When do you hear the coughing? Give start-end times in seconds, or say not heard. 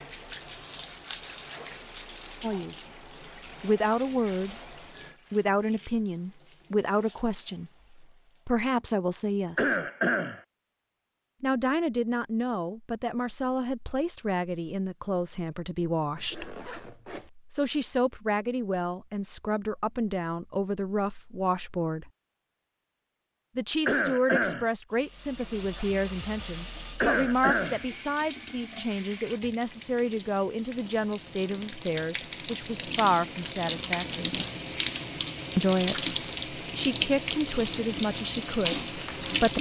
9.6-10.4, 23.9-24.7, 27.0-27.9.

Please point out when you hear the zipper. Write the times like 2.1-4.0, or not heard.
16.1-17.3.